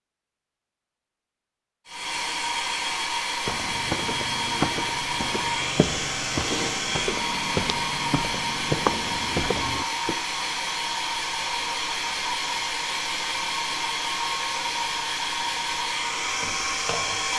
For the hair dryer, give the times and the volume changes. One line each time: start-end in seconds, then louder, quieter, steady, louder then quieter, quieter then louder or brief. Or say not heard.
1.9-17.3 steady.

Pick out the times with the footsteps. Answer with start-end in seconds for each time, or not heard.
3.5-10.2.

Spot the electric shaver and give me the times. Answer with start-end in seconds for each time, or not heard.
not heard.